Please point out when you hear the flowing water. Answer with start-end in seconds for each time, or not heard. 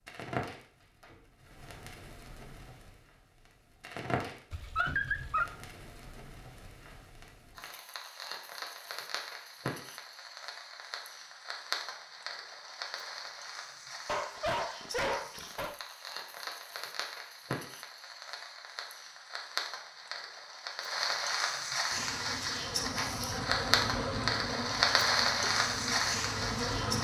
not heard.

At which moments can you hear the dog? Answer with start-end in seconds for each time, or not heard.
4.5-5.5, 14.1-15.8.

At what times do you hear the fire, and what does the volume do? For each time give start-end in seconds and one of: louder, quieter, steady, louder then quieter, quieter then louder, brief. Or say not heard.
0.1-27.0 louder.